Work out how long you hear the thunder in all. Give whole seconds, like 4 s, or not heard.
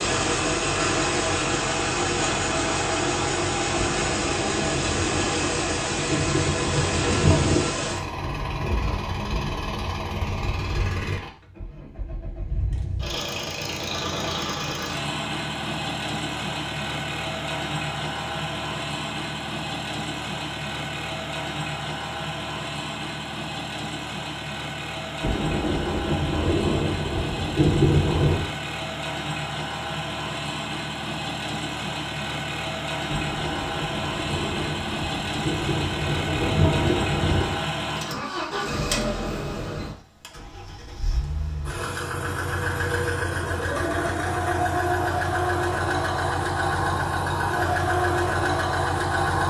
12 s.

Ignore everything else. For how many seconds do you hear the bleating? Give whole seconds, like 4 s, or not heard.
not heard.